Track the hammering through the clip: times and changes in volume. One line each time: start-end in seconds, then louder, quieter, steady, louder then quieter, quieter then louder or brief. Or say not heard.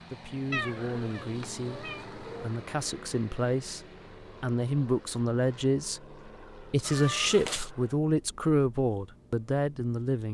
not heard.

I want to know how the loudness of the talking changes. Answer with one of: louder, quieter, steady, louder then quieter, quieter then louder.
louder.